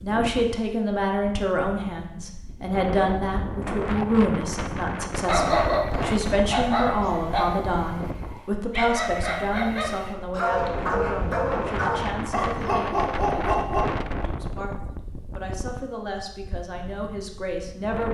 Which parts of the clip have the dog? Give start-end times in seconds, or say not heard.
5.2-13.8.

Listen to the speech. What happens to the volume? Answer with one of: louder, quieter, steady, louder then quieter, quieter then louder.
quieter.